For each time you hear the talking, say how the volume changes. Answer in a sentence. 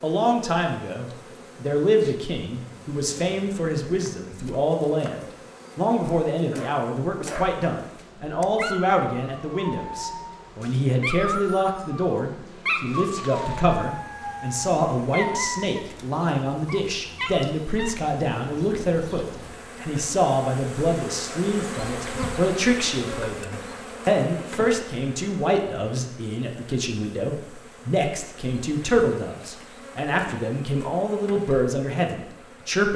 You can hear the talking from 0.0 to 32.9 s, at a steady volume.